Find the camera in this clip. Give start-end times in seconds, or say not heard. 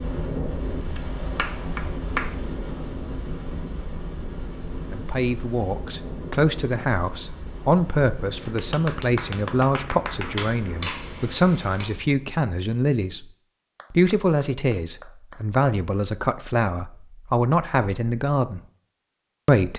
10.2-11.8.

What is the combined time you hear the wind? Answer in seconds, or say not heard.
12 s.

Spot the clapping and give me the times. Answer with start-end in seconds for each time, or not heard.
0.9-2.4, 8.4-10.4, 13.8-15.4.